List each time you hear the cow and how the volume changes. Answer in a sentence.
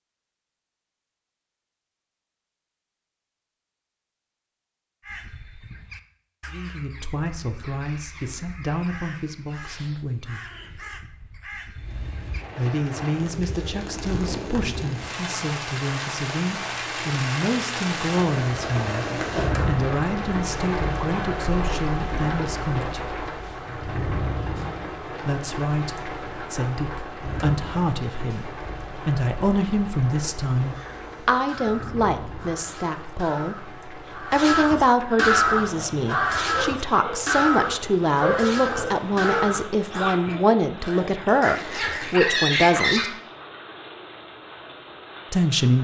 You can't hear the cow here.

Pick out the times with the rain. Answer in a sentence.
You can hear the rain from 11.8 to 45.7 s.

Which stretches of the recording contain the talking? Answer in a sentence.
The talking can be heard from 6.5 to 10.4 s, from 12.6 to 23.2 s, from 25.2 to 43.1 s and from 45.3 to 45.7 s.